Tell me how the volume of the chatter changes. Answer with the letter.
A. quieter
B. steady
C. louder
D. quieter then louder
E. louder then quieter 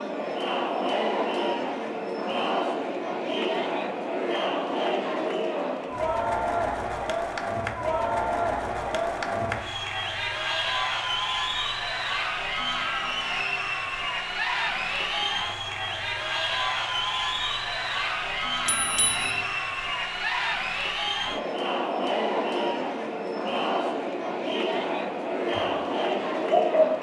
B.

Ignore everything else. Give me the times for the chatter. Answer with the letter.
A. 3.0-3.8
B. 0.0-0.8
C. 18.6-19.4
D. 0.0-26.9
D.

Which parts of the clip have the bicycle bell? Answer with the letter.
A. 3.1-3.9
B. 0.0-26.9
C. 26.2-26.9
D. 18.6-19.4
D.